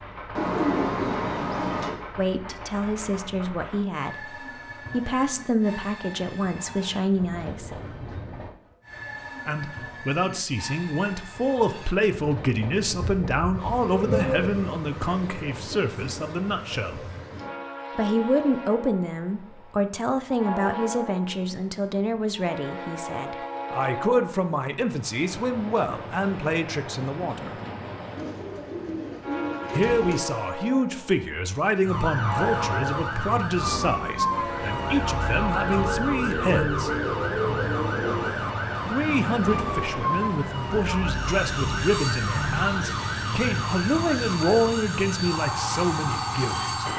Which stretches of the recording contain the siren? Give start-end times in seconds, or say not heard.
31.8-46.9.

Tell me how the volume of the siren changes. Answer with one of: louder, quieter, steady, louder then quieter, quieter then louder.
steady.